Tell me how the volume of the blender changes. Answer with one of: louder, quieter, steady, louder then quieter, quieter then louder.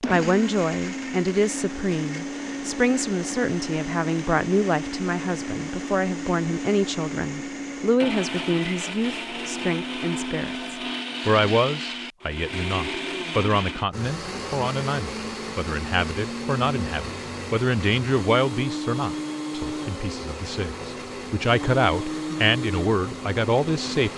steady.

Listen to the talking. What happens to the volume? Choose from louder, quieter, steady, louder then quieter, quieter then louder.
steady.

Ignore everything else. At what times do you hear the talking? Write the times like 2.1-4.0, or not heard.
0.1-24.1.